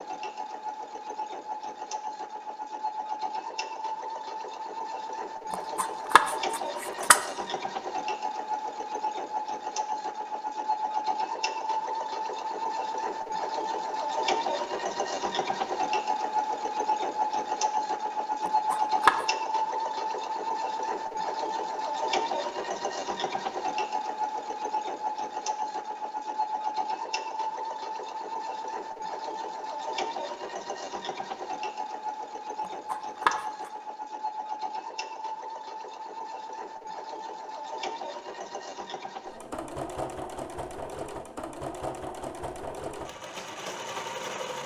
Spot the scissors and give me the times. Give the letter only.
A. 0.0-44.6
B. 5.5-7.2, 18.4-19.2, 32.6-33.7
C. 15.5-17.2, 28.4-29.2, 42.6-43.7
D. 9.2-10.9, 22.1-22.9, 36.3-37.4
B.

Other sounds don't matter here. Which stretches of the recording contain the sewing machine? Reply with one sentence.
You can hear the sewing machine from 0.0 to 44.6 s.